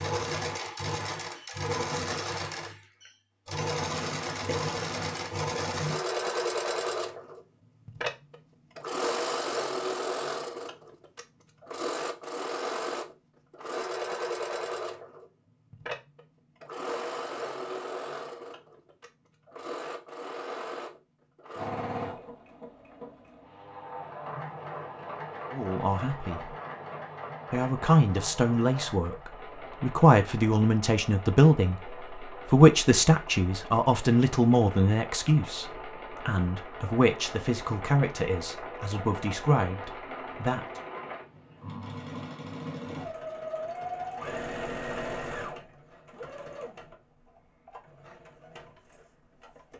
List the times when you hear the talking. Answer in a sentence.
You can hear the talking from 25.5 to 26.6 s and from 27.5 to 40.8 s.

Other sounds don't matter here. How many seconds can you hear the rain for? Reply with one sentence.
You can't hear the rain here.